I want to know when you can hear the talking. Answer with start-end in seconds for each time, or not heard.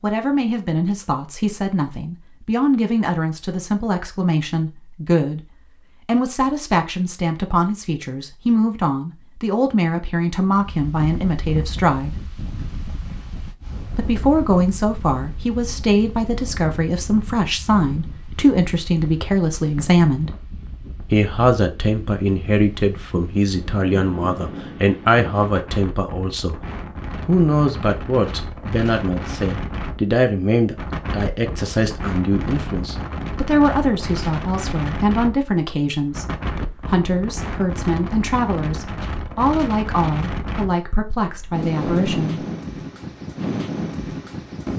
0.0-5.5, 6.0-12.3, 13.9-20.3, 21.1-26.6, 27.2-42.5.